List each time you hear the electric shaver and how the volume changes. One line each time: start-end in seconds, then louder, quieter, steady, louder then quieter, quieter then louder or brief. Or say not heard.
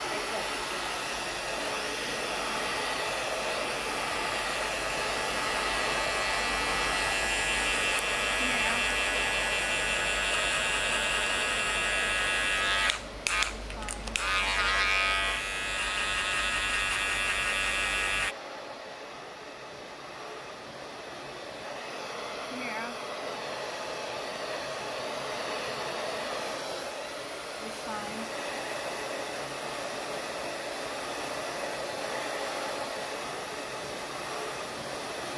0.2-18.4 louder.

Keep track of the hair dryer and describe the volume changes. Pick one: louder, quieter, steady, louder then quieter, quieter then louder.
quieter then louder.